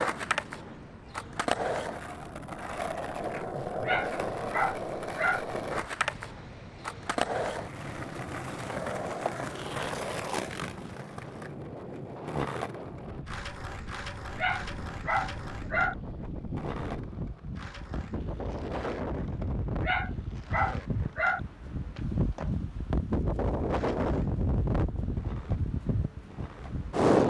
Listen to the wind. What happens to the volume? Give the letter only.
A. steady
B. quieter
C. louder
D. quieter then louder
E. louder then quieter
C.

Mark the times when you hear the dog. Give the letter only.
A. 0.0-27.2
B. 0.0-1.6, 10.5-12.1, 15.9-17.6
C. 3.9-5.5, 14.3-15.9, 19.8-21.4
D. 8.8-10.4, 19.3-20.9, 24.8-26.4
C.